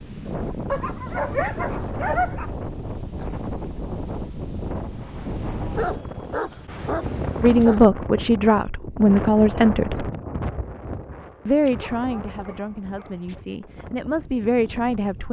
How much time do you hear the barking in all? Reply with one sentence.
You can hear the barking for 6 seconds altogether.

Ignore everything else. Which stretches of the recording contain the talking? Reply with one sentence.
The talking can be heard from 7.4 to 10.1 s and from 11.4 to 15.2 s.